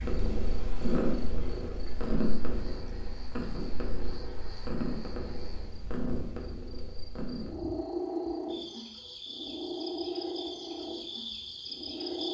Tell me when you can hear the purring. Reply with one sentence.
The purring can be heard from 0.0 to 12.2 s.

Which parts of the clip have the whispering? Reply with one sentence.
You can't hear the whispering here.